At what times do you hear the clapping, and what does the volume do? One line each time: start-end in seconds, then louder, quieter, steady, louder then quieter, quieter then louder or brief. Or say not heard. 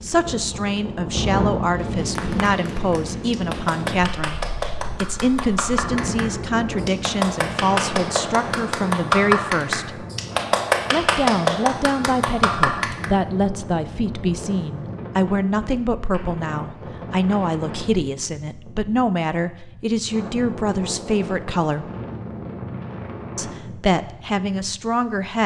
2.1-13.1 louder.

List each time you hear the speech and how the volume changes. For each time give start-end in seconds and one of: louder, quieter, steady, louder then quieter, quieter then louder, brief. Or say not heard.
0.0-10.1 steady
10.9-21.9 steady
23.4-25.4 brief.